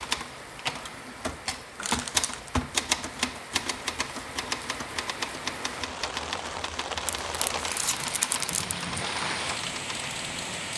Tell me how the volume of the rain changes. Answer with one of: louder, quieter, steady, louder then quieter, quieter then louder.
louder.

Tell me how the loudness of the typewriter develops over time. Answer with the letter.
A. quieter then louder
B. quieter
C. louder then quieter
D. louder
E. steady
B.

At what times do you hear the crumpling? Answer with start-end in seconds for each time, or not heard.
1.8-2.5, 7.0-8.8.